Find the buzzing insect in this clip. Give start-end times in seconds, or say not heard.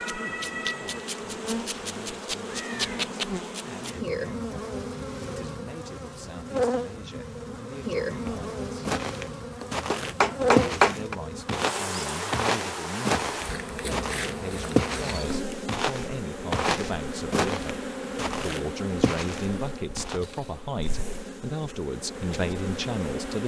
0.0-23.4.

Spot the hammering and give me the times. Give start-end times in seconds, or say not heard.
9.6-11.2.